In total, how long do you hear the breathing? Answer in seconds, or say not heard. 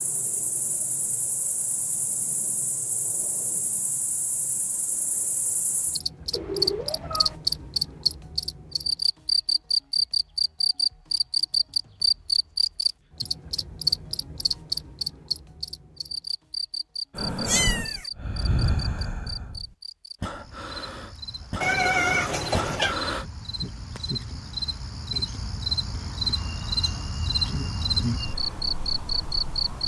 6 s.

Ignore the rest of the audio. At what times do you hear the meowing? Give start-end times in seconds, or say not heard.
6.3-7.3, 17.4-18.1, 21.6-22.9.